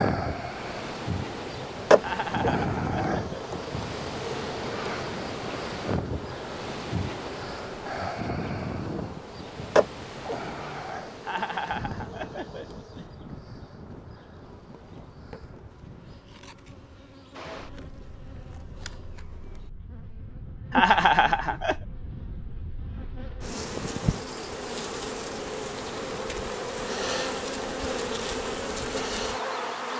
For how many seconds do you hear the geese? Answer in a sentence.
You can't hear the geese here.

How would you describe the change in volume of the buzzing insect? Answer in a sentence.
The loudness of the buzzing insect goes down, then up.